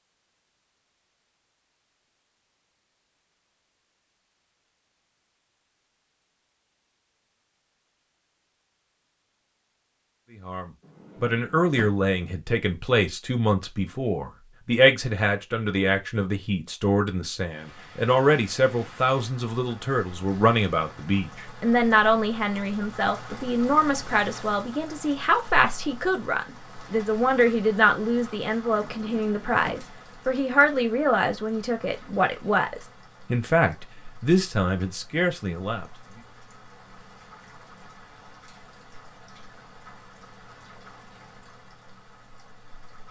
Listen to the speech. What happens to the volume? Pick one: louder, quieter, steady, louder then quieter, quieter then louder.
steady.